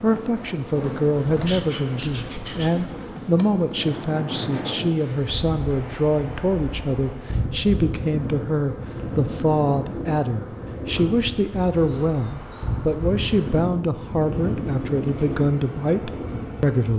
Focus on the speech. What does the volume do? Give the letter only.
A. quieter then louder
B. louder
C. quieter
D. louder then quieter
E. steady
E.